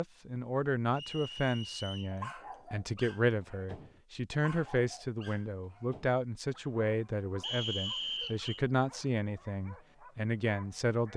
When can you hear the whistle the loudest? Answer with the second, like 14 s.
8 s.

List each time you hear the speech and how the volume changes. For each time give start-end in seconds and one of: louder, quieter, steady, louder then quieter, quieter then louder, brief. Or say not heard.
0.0-11.1 steady.